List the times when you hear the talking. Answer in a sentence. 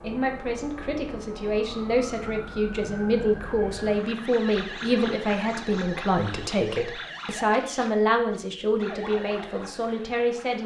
The talking can be heard from 0.0 to 10.6 s.